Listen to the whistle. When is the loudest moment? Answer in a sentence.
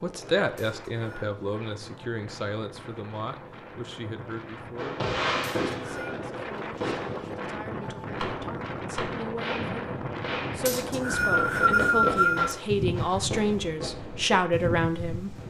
The volume of the whistle peaks at 12 seconds.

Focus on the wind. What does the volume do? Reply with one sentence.
The volume of the wind goes up.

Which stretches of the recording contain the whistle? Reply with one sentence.
The whistle can be heard from 0.6 to 1.4 s, from 5.4 to 6.2 s and from 10.7 to 12.6 s.